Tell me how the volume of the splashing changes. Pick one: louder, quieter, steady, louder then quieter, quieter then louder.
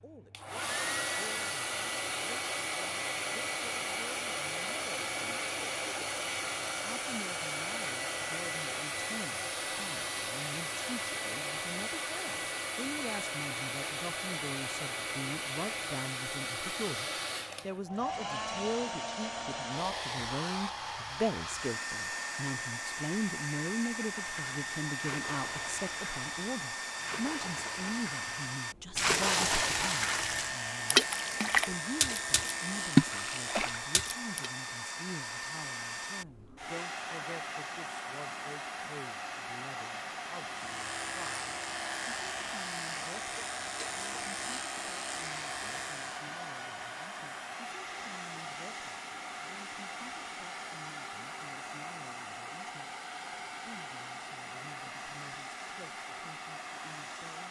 louder.